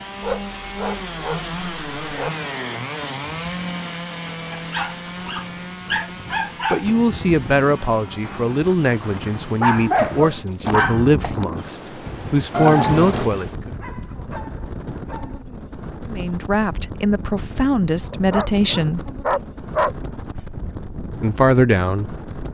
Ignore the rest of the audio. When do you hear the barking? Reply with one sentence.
The barking can be heard from 0.2 to 2.3 s, from 4.5 to 6.8 s, from 9.6 to 11.4 s, from 13.6 to 15.4 s and from 18.1 to 19.9 s.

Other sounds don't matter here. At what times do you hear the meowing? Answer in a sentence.
You can hear the meowing from 12.5 to 13.3 s.